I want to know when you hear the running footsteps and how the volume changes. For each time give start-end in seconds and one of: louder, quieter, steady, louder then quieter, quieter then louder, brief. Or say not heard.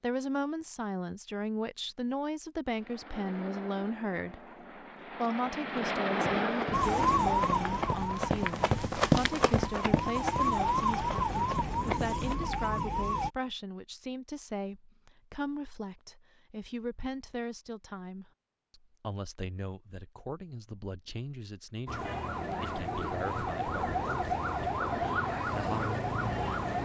6.1-12.7 louder then quieter.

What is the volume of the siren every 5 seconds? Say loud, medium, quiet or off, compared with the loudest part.
off, loud, loud, off, loud, loud.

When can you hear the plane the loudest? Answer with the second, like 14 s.
6 s.